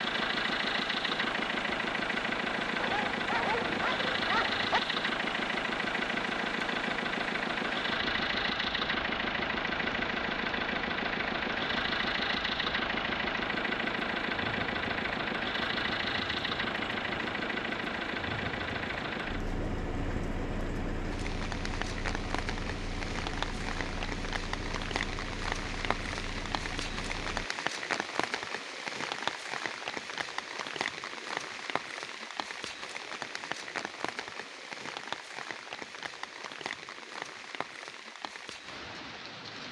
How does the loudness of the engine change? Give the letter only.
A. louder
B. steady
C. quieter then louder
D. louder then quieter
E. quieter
E.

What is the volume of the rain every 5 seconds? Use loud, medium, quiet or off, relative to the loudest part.
medium, medium, medium, medium, loud, loud, loud, medium.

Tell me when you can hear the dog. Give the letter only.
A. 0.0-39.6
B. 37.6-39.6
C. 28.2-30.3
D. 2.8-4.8
D.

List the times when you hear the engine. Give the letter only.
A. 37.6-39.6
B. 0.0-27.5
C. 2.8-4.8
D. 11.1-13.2
B.